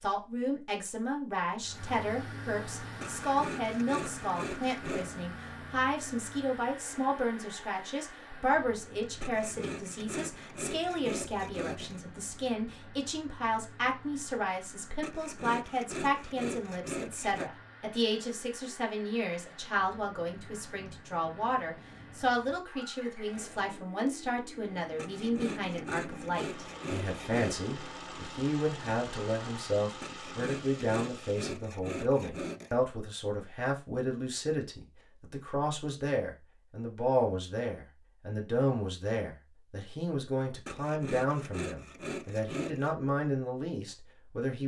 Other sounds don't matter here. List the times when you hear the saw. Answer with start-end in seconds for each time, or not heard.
3.0-5.1, 9.2-12.0, 15.0-17.5, 24.9-27.6, 30.0-32.8, 40.6-43.0.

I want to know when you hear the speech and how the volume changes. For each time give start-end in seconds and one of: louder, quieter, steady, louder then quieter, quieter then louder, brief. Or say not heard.
0.0-44.6 steady.